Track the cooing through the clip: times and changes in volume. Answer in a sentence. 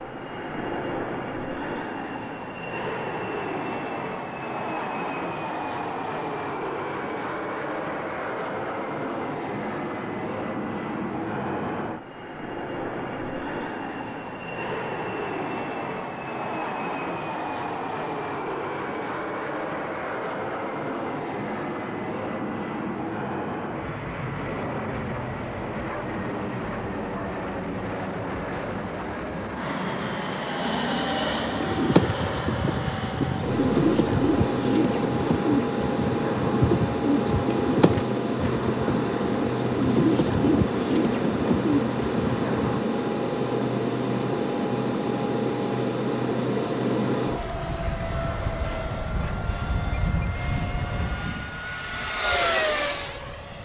The cooing can be heard from 31.6 to 42.8 s, at a steady volume.